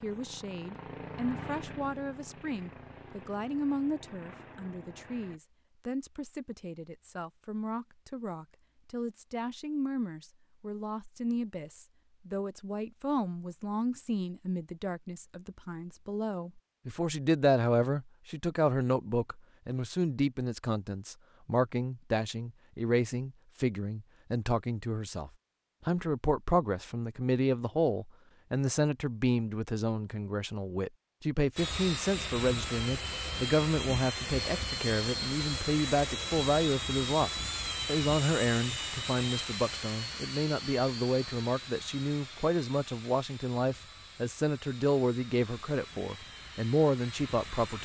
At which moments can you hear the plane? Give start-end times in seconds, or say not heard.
0.0-5.4, 31.6-47.7.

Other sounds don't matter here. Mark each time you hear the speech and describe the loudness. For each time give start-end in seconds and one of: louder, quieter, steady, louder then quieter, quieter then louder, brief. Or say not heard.
0.0-47.7 louder.